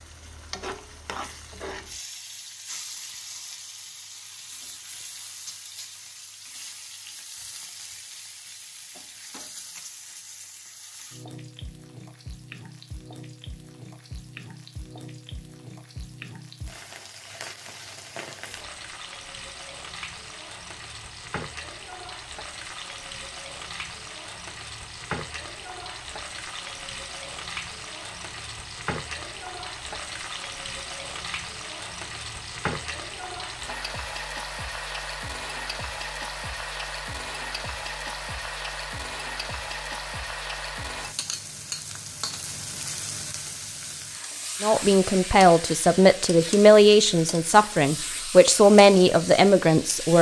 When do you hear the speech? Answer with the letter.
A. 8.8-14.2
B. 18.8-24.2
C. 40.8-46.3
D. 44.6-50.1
D.